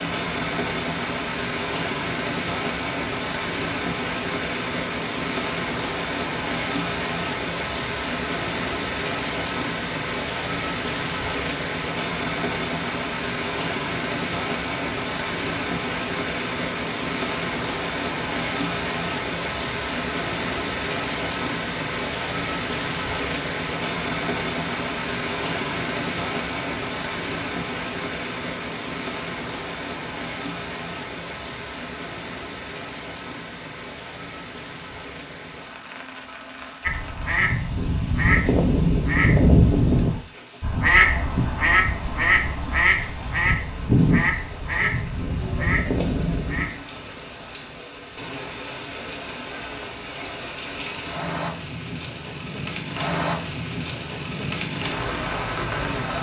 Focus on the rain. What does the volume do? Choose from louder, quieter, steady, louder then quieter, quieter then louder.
quieter then louder.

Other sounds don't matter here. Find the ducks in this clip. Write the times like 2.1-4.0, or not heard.
36.8-46.7.